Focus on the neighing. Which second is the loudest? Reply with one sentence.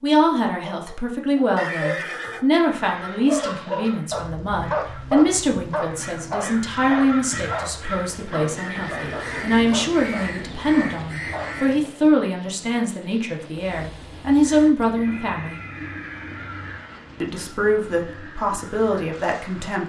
The loudest moment of the neighing is at 2 seconds.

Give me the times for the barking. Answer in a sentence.
The barking can be heard from 0.7 to 11.9 s.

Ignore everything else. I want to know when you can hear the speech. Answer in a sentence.
The speech can be heard from 0.0 to 15.6 s and from 17.2 to 19.8 s.